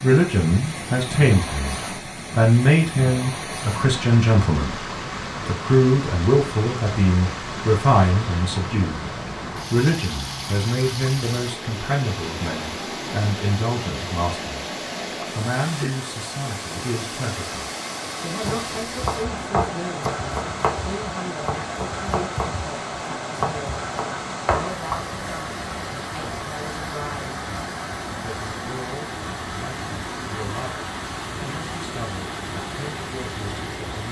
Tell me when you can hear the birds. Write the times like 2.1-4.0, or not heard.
not heard.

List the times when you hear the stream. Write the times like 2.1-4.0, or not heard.
0.0-34.0.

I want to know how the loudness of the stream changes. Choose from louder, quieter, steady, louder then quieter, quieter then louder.
steady.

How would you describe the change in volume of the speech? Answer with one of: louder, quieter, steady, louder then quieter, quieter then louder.
quieter.